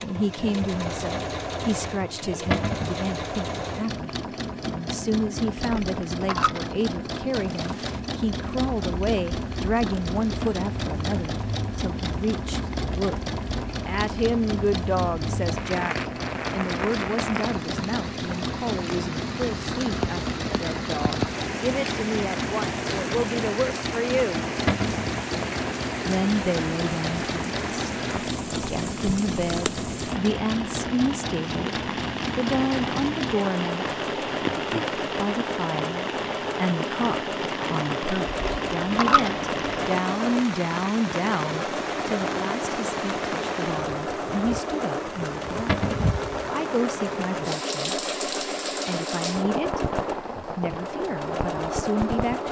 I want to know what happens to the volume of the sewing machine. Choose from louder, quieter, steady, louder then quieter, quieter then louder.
steady.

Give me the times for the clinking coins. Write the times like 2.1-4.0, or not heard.
5.5-6.7, 38.2-40.0.